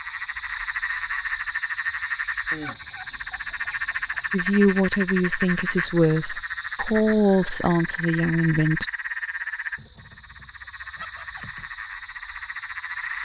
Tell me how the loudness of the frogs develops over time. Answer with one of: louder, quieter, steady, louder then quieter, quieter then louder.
quieter.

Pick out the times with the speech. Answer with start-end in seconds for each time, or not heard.
4.3-8.8.